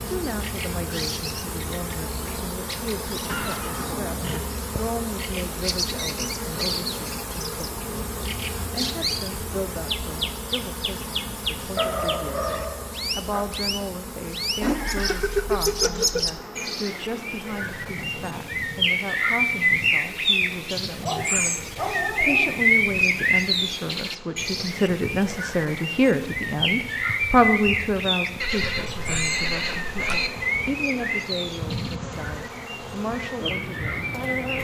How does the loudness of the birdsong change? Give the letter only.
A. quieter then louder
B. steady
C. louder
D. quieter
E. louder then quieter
E.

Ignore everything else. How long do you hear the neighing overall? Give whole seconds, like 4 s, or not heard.
5 s.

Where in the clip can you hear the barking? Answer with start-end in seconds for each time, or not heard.
11.8-13.4, 20.5-22.6.